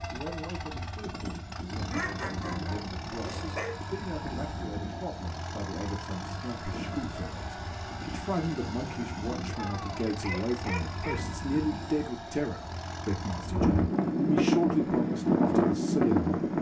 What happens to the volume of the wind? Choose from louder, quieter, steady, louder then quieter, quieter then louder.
louder.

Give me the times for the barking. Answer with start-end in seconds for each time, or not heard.
1.9-3.8, 9.6-11.2.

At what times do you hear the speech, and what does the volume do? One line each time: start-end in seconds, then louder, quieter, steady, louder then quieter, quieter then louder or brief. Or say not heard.
0.1-16.3 louder.